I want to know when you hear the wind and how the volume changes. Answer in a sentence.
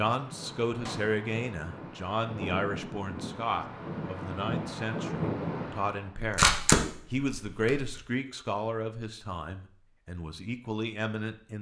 The wind can be heard from 0.0 to 6.1 s, getting louder.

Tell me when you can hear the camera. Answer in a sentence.
You can hear the camera from 6.2 to 8.0 s.